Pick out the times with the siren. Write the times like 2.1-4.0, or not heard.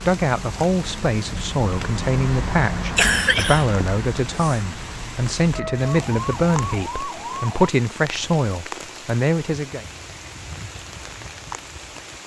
5.5-7.7.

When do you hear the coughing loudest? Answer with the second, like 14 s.
3 s.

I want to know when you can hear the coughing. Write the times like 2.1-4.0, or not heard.
2.8-4.6.